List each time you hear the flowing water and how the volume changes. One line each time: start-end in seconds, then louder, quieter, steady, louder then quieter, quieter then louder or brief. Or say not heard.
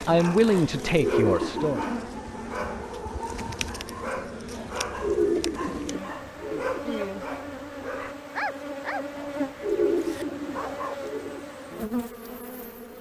not heard.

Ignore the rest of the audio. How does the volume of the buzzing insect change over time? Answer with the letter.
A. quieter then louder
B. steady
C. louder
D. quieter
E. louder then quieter
B.